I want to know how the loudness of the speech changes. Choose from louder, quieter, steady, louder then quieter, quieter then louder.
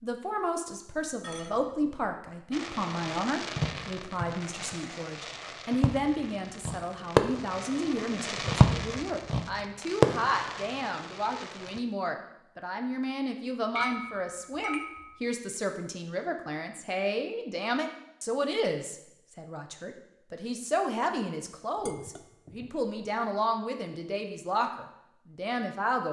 steady.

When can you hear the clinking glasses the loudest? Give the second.
14 s.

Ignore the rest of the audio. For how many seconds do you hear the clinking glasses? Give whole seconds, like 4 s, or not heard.
3 s.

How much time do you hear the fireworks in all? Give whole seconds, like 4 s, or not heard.
9 s.